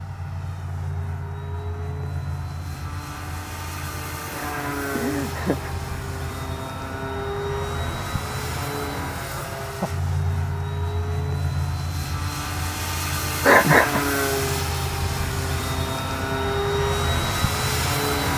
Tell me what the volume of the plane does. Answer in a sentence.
The volume of the plane goes up.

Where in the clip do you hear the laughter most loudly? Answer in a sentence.
The volume of the laughter peaks at 14 seconds.